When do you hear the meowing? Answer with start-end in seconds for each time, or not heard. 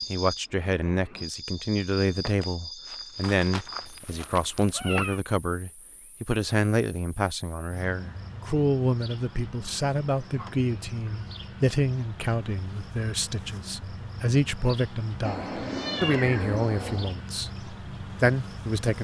4.6-5.2, 15.2-17.1.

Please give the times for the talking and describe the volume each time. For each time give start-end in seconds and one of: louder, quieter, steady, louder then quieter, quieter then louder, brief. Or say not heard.
0.1-18.9 steady.